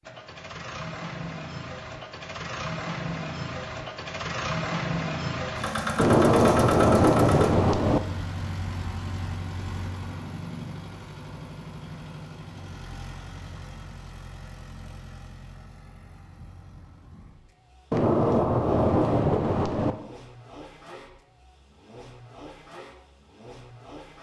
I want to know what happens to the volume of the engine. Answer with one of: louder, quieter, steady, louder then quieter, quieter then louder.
quieter.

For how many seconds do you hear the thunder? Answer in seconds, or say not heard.
4 s.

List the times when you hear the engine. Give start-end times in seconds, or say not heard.
0.0-24.1.